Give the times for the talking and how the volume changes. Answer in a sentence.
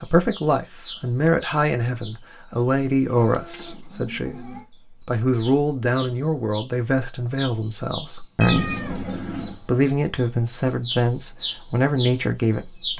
You can hear the talking from 0.0 to 12.9 s, at a steady volume.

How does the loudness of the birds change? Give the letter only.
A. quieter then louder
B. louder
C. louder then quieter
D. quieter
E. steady
A.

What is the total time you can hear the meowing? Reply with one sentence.
The meowing can be heard for 3 seconds in total.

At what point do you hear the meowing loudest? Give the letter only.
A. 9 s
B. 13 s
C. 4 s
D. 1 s
A.